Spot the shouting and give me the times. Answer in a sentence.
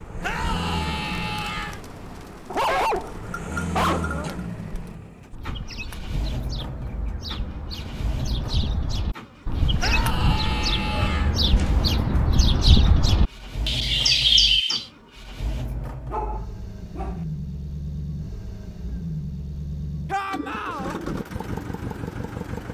The shouting can be heard from 0.2 to 1.8 s, from 9.8 to 11.4 s and from 20.1 to 21.0 s.